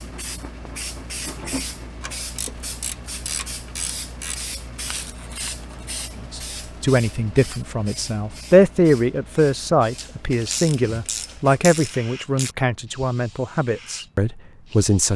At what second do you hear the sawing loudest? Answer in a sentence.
The volume of the sawing peaks at 1 second.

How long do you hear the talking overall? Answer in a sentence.
The talking can be heard for 9 seconds in total.